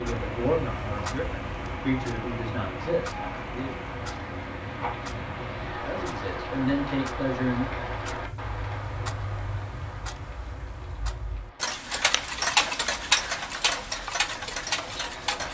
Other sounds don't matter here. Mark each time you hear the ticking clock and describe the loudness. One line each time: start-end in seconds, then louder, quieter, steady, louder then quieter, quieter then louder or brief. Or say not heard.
0.0-15.5 louder.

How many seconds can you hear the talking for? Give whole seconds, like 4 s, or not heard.
6 s.